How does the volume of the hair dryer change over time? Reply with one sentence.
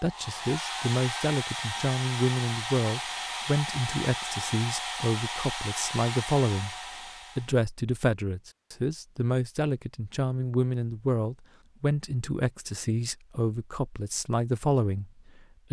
The volume of the hair dryer stays about the same.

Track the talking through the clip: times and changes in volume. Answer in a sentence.
The talking can be heard from 0.0 to 6.8 s, at a steady volume; and from 7.3 to 15.6 s, at a steady volume.